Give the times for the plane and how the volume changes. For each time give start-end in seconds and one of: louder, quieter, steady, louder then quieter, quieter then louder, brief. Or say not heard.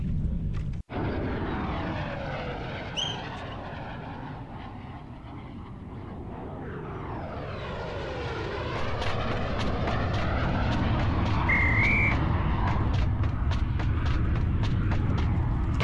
0.0-15.7 quieter then louder.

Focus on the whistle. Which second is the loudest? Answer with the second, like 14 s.
12 s.